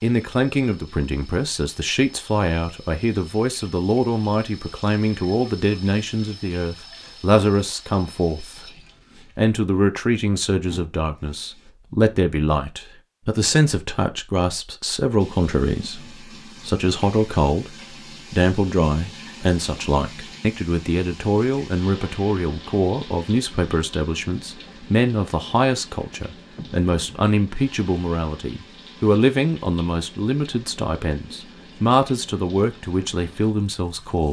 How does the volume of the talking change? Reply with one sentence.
The volume of the talking stays about the same.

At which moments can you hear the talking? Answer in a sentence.
You can hear the talking from 0.0 to 8.7 s and from 9.3 to 34.2 s.